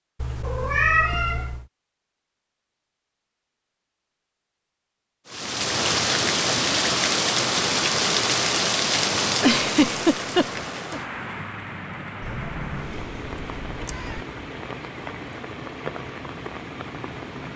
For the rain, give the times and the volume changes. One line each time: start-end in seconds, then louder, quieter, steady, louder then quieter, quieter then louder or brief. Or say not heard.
5.2-17.5 quieter.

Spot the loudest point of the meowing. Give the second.
1 s.